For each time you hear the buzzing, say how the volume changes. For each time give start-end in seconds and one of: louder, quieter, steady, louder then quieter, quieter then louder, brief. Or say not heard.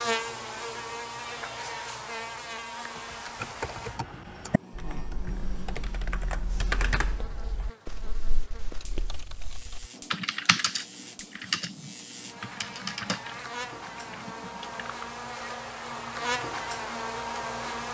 0.0-17.8 quieter then louder.